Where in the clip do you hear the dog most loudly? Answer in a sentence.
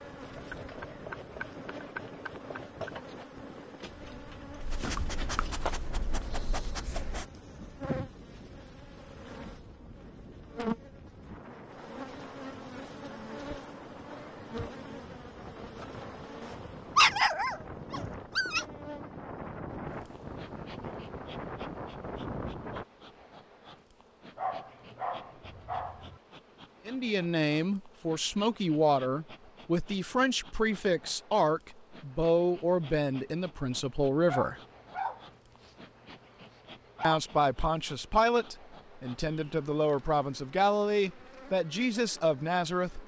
The volume of the dog peaks at 17 seconds.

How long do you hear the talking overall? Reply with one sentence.
The talking can be heard for 14 seconds in total.